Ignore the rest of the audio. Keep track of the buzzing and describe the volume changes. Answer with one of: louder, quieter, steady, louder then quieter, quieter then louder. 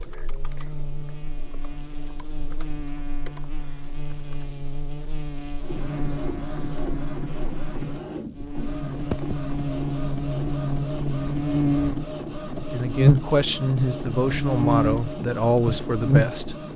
louder.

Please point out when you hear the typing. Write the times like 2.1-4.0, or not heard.
0.0-4.5.